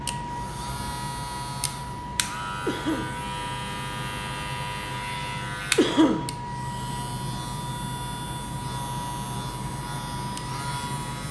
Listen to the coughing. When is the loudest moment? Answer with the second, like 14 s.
6 s.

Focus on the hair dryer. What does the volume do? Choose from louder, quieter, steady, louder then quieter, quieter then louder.
steady.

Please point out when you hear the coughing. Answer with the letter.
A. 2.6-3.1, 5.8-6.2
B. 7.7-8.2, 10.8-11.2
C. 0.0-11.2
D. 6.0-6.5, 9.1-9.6
A.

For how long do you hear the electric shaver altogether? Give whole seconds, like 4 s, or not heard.
11 s.